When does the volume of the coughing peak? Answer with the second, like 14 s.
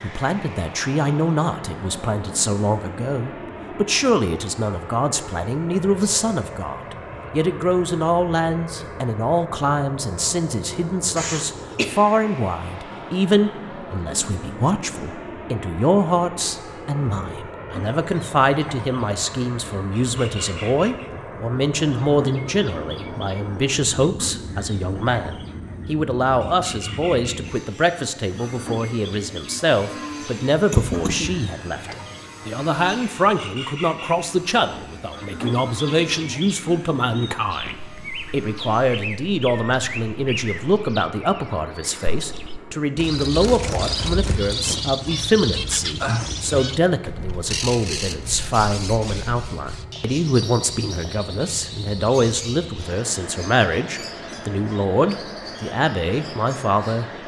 31 s.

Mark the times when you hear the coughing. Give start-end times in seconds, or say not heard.
11.2-11.8, 30.6-31.4.